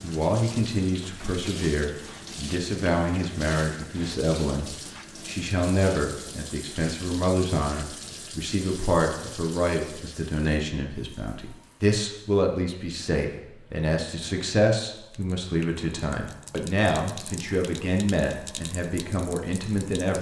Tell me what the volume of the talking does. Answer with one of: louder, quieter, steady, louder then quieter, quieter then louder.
steady.